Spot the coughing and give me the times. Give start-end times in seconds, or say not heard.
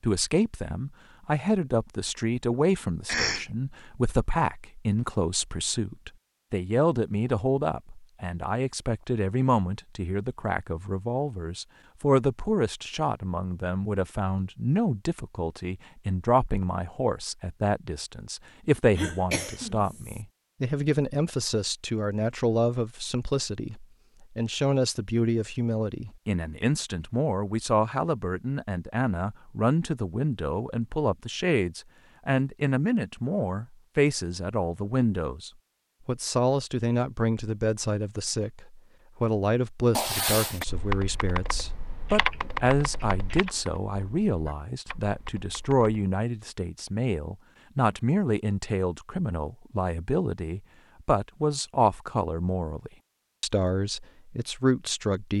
3.0-3.5, 18.9-20.2, 39.9-40.6.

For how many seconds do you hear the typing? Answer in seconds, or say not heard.
5 s.